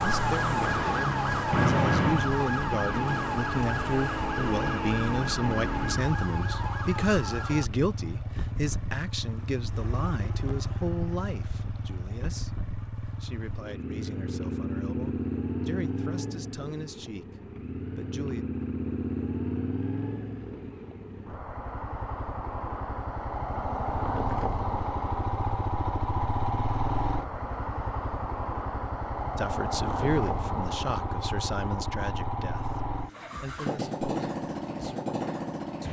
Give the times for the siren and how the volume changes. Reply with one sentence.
The siren can be heard from 0.0 to 7.7 s, getting quieter.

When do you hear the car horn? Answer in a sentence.
You can hear the car horn from 1.5 to 2.3 s.